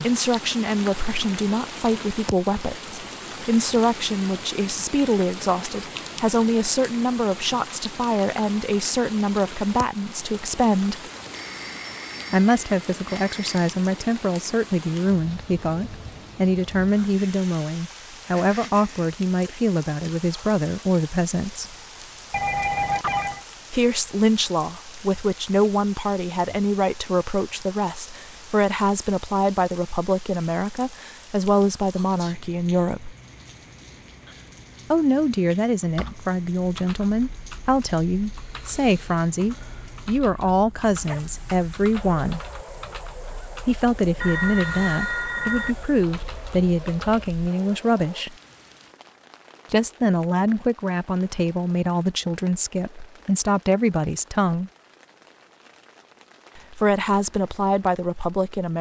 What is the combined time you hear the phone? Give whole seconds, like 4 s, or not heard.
5 s.